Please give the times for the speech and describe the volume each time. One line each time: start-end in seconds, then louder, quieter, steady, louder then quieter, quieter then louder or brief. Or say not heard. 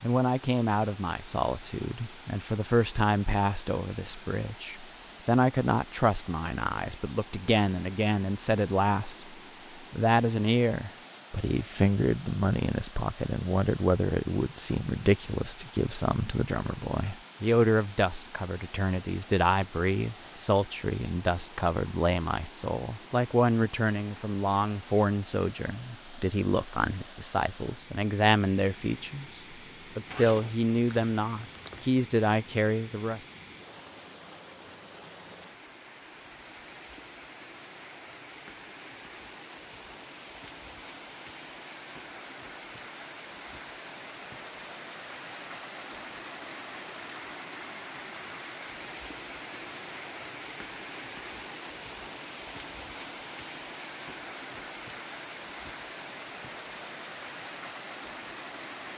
0.0-9.2 steady
9.9-33.2 steady.